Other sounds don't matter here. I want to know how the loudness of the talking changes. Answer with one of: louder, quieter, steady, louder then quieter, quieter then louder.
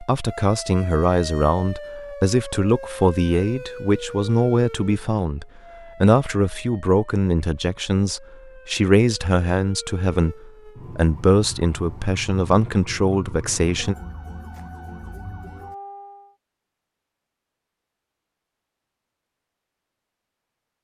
steady.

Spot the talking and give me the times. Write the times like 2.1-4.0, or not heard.
0.0-13.9.